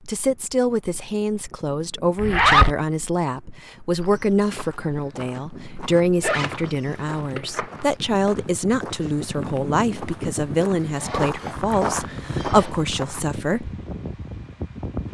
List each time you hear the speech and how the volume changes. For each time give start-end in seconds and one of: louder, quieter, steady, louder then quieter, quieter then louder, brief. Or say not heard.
0.1-13.7 steady.